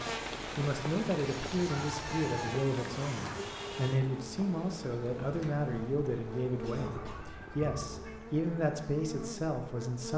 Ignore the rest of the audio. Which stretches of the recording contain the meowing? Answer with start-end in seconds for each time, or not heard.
1.2-2.5, 6.8-8.2.